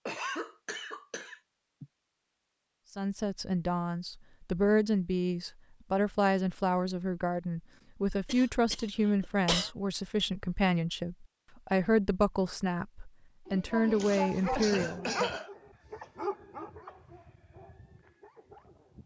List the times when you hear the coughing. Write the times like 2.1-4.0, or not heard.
0.1-1.9, 8.2-9.7, 13.4-15.5.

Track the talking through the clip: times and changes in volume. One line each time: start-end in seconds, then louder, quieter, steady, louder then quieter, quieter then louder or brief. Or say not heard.
3.0-15.2 steady.